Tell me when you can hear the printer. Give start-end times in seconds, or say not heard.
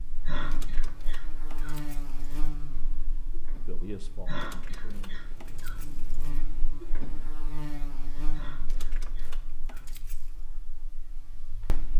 2.2-7.3.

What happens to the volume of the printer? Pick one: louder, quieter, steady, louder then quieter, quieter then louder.
louder.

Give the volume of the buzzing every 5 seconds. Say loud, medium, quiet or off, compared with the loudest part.
loud, loud, medium.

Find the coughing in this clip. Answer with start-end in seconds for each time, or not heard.
0.2-1.8, 4.2-5.8, 8.3-9.8.